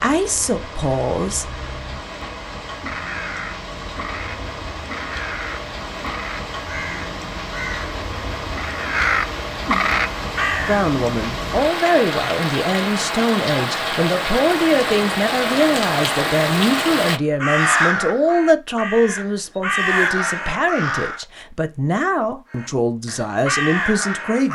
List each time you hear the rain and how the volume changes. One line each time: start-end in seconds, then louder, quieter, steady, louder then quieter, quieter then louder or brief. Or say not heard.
0.0-17.2 louder.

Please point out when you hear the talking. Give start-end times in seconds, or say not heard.
0.0-1.6, 10.7-24.5.